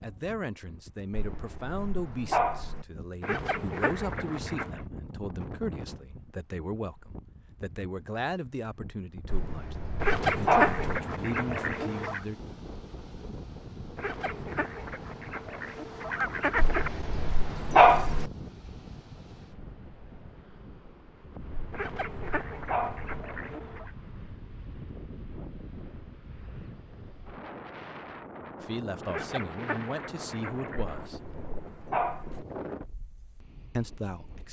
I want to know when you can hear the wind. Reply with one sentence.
The wind can be heard from 0.0 to 34.4 s.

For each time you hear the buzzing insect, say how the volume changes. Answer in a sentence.
The buzzing insect can't be heard in this clip.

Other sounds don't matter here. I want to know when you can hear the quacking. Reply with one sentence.
You can hear the quacking from 3.2 to 4.8 s, from 10.0 to 12.2 s, from 13.9 to 16.9 s, from 21.7 to 23.9 s and from 29.1 to 30.9 s.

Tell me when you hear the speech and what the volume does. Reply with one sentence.
You can hear the speech from 0.0 to 12.4 s, at a steady volume; briefly from 28.6 to 31.2 s; and briefly from 33.8 to 34.4 s.